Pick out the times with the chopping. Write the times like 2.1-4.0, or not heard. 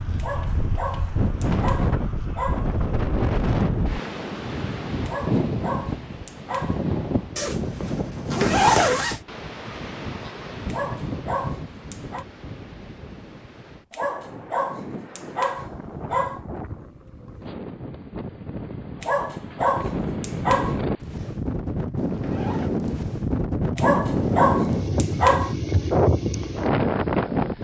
not heard.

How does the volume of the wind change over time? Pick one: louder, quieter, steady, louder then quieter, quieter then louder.
quieter then louder.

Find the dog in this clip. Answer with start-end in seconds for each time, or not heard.
0.1-2.7, 5.0-6.8, 10.7-12.2, 13.9-16.4, 19.0-20.8, 23.8-25.6.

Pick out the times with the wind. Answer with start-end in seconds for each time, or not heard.
0.0-27.6.